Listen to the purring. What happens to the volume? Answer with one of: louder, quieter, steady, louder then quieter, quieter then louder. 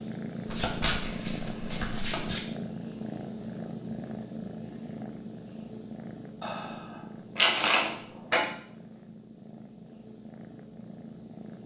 quieter.